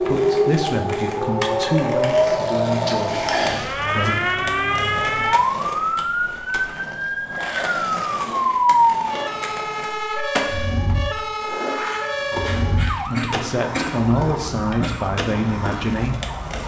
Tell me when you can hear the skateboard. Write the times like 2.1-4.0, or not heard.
0.0-16.6.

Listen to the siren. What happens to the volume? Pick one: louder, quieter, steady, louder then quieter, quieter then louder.
quieter.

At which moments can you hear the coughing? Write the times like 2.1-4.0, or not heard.
2.9-3.8, 12.4-15.1.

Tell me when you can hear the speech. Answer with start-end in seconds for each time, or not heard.
0.0-4.2, 12.9-16.1.